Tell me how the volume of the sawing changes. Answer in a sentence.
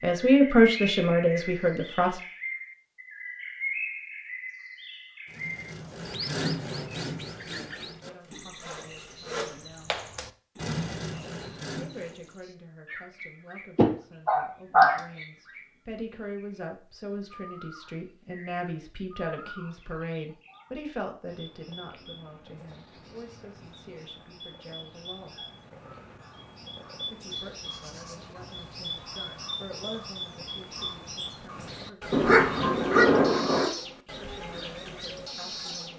The loudness of the sawing goes down, then up.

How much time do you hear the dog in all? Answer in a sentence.
The dog can be heard for 3 seconds in total.